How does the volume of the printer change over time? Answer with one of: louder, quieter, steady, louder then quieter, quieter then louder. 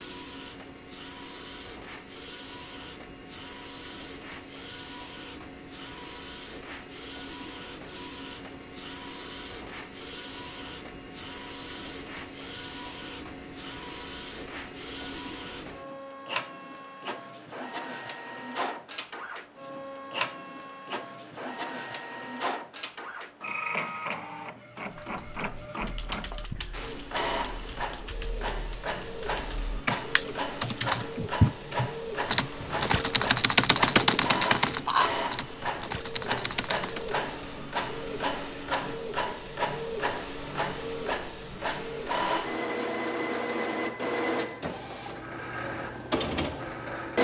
louder.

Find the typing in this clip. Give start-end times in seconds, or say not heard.
25.1-37.1.